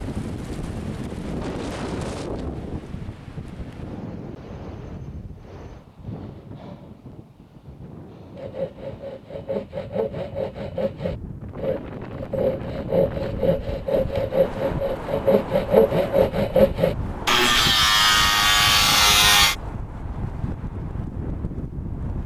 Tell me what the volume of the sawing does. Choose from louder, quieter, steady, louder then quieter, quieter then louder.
louder.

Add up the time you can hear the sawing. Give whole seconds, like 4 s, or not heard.
11 s.